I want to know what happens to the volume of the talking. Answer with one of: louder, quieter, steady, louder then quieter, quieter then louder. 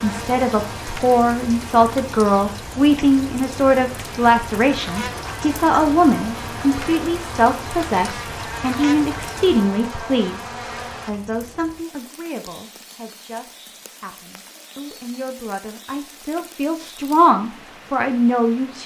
quieter then louder.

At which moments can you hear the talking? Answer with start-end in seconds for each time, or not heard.
0.0-18.8.